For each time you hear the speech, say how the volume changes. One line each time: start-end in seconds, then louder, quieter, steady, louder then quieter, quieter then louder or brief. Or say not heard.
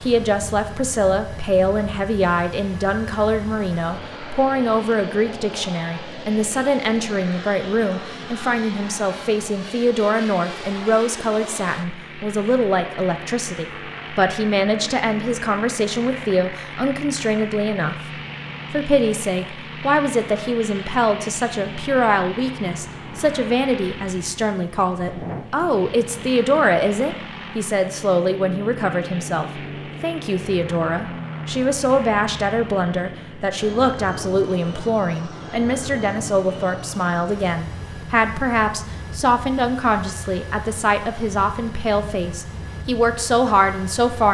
0.0-17.9 steady
18.7-44.2 steady.